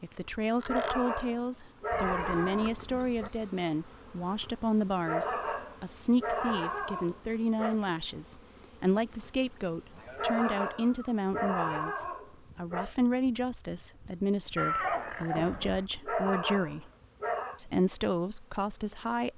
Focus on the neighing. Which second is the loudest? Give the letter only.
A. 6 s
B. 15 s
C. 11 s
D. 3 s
B.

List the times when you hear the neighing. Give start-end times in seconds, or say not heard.
1.9-3.3, 9.9-11.1, 14.6-15.8.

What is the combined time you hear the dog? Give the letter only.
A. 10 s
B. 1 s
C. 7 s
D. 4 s
A.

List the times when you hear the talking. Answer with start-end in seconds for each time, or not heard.
0.0-16.9, 17.6-19.3.